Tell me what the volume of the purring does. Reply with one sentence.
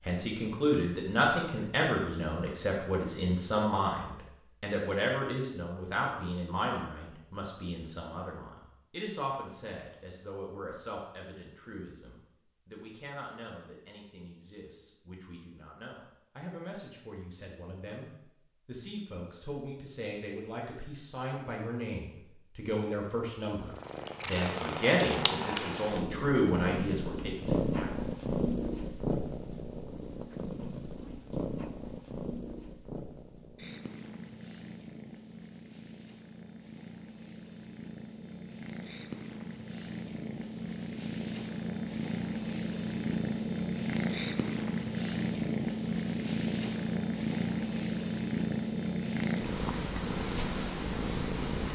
The loudness of the purring goes down, then up.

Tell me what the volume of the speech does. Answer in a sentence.
The volume of the speech goes down, then up.